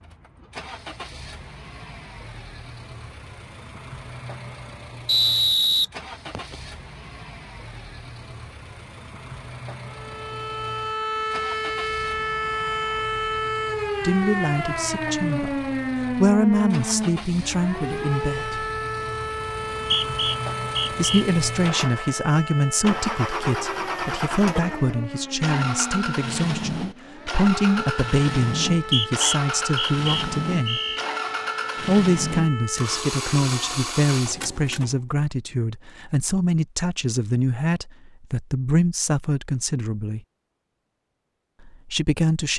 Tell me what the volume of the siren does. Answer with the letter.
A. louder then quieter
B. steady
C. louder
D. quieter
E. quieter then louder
D.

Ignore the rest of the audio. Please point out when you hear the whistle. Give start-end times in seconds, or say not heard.
5.0-6.5, 19.7-21.2, 28.7-31.1.